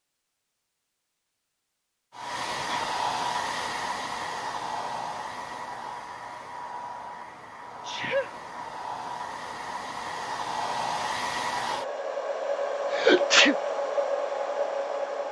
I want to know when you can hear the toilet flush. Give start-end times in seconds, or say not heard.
not heard.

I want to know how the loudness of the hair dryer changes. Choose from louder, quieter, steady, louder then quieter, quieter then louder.
quieter then louder.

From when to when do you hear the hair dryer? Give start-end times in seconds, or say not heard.
2.1-15.2.